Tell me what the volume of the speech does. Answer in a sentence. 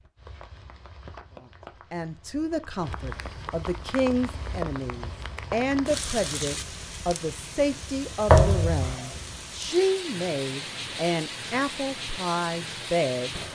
The volume of the speech stays about the same.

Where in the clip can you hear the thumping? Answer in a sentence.
You can hear the thumping from 8.2 to 8.8 s.